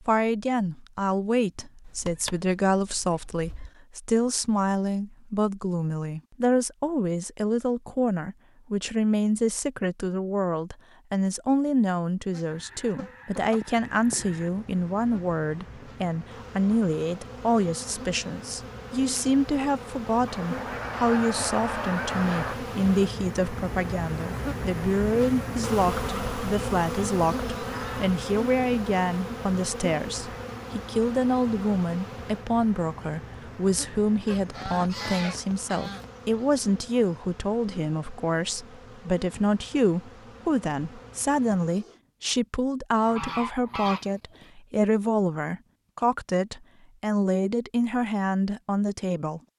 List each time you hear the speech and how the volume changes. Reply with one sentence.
The speech can be heard from 0.1 to 49.4 s, at a steady volume.